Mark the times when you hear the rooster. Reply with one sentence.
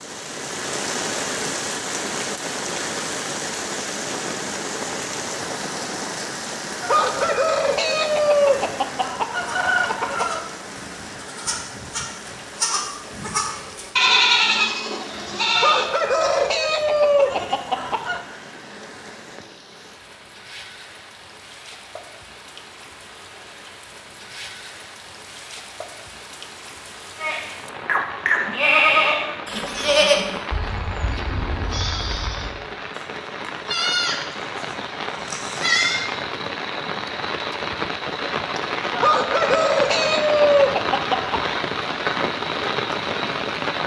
The rooster can be heard from 6.8 to 10.4 s, from 15.6 to 18.2 s and from 39.0 to 41.5 s.